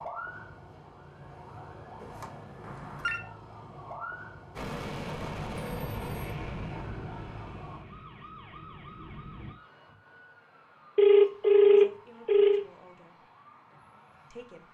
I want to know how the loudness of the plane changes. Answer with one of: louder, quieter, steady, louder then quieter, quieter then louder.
quieter.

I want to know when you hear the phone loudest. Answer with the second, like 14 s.
12 s.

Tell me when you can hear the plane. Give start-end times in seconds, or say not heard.
4.5-9.6.